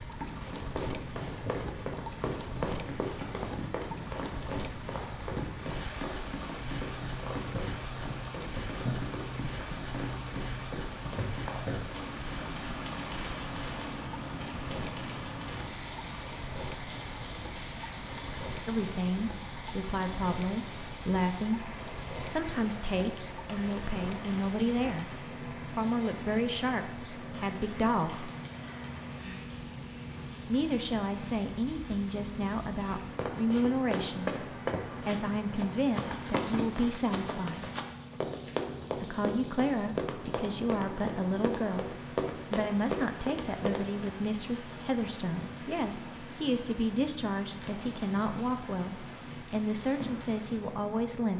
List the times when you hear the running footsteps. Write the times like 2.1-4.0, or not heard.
0.6-11.3, 33.1-43.9.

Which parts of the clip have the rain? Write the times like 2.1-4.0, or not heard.
0.0-51.3.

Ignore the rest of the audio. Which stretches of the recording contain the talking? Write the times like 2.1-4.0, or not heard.
18.6-28.3, 30.4-34.3, 35.0-37.6, 39.0-41.9, 42.5-51.3.